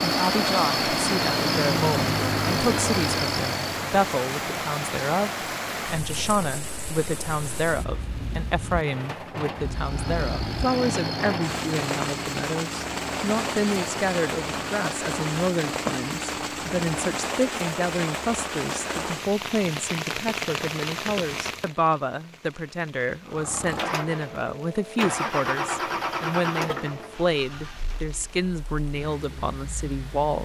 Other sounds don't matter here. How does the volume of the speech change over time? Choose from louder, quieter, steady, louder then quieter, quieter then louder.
steady.